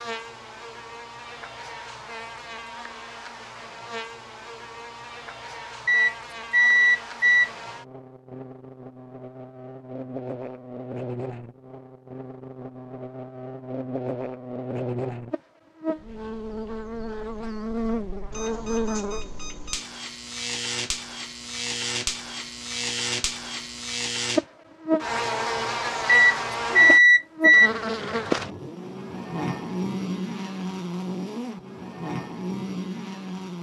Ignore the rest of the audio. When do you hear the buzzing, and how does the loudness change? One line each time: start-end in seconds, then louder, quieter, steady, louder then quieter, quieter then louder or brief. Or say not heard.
0.0-33.5 louder.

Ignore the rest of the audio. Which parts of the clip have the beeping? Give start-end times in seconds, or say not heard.
5.8-7.5, 18.3-19.9, 26.1-27.7.